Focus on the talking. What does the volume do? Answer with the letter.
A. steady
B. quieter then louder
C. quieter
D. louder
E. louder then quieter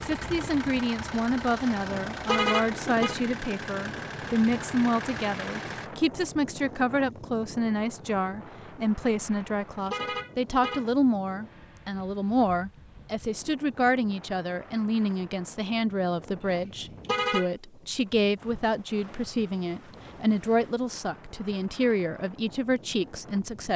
A.